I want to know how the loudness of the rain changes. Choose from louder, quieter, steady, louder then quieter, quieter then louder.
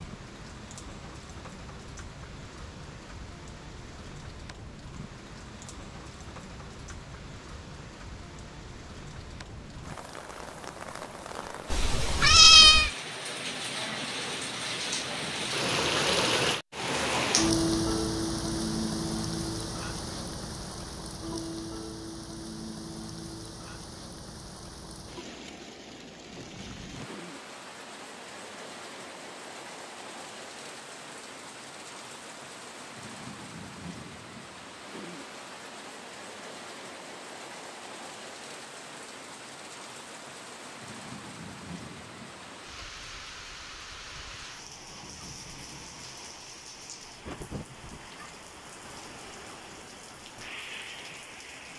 louder then quieter.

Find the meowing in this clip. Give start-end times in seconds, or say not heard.
11.7-12.9.